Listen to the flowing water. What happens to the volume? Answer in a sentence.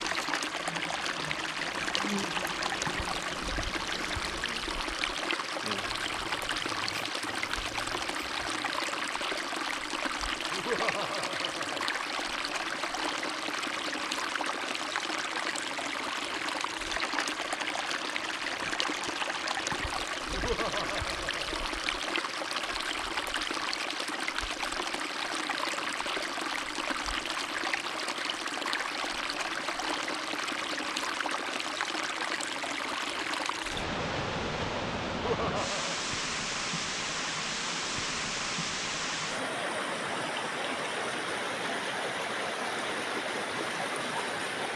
The volume of the flowing water stays about the same.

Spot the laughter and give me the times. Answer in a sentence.
The laughter can be heard from 10.5 to 11.9 s, from 20.2 to 21.6 s and from 35.1 to 36.0 s.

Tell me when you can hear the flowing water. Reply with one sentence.
The flowing water can be heard from 0.0 to 44.7 s.